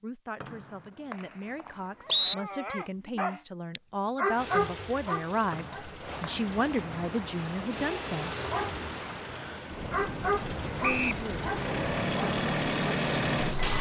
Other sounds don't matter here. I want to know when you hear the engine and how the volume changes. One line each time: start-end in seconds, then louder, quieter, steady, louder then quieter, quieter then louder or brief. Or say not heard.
4.3-13.7 louder.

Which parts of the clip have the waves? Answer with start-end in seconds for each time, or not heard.
4.3-13.7.